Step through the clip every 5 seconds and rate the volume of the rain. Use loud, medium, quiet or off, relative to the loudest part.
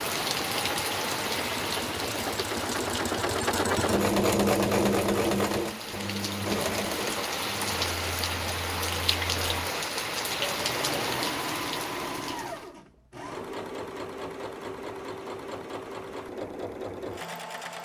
loud, loud, loud, off.